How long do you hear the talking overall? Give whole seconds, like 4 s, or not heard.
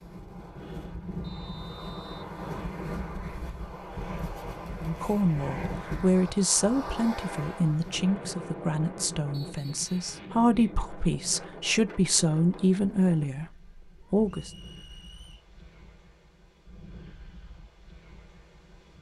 10 s.